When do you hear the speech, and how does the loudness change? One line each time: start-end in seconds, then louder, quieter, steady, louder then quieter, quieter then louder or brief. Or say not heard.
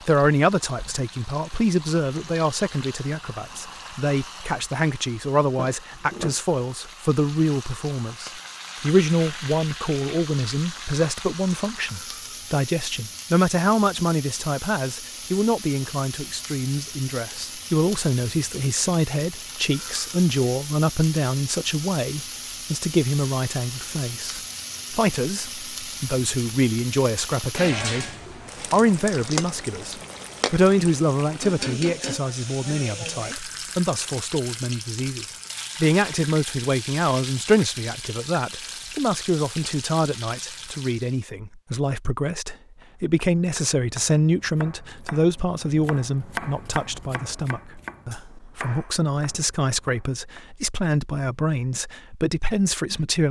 0.1-28.1 steady
28.7-53.2 steady.